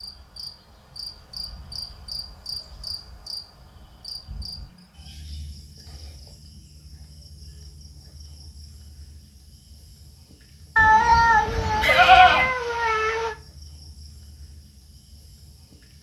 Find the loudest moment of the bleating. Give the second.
12 s.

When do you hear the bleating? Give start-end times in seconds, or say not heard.
10.8-12.5.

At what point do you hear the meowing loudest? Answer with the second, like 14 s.
11 s.